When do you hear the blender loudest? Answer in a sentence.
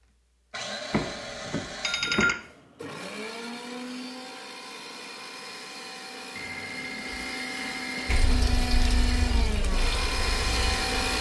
The volume of the blender peaks at 11 seconds.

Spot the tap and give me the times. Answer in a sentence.
The tap can be heard from 8.1 to 11.1 s.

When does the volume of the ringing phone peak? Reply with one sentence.
The volume of the ringing phone peaks at 2 seconds.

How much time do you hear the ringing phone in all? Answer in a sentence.
The ringing phone can be heard for 3 seconds in total.